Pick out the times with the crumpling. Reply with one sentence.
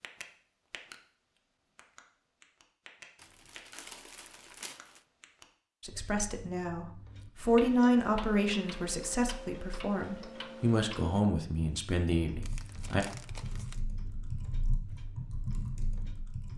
The crumpling can be heard from 3.1 to 5.0 s and from 12.4 to 13.8 s.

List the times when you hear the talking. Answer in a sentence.
You can hear the talking from 5.8 to 13.1 s.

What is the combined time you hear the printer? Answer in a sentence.
You can't hear the printer here.